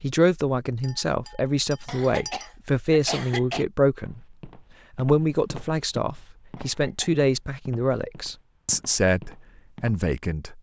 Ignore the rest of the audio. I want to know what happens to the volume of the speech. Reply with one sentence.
The volume of the speech stays about the same.